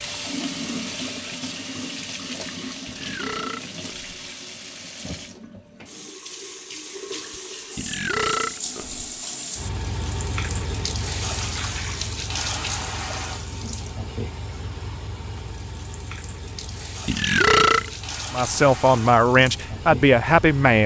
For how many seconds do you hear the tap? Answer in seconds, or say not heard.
21 s.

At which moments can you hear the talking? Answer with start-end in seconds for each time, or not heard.
18.3-20.8.